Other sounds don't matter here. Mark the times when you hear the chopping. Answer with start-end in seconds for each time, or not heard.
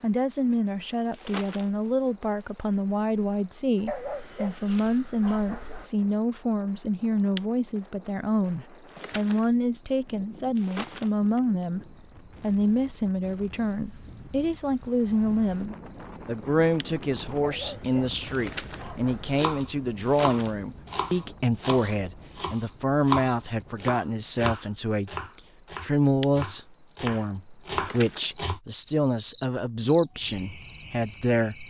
19.4-28.6.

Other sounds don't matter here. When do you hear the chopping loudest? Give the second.
23 s.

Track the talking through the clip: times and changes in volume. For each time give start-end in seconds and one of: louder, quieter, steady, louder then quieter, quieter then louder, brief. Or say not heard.
0.0-31.6 steady.